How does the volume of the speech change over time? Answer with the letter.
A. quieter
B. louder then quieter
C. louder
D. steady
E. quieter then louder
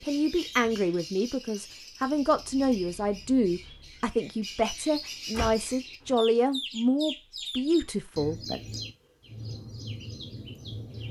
D.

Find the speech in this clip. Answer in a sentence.
You can hear the speech from 0.0 to 8.6 s.